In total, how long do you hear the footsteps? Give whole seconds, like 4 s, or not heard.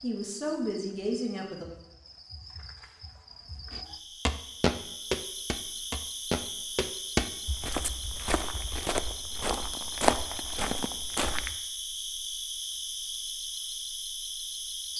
8 s.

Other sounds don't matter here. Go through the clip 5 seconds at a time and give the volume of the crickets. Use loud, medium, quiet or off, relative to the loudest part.
medium, loud, loud.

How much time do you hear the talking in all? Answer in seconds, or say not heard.
2 s.